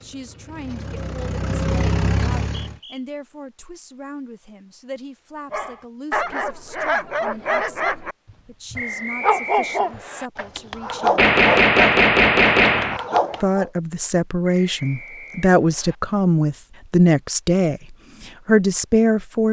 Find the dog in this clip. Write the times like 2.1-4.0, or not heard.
5.5-13.7.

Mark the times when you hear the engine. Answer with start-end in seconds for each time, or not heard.
0.0-2.8.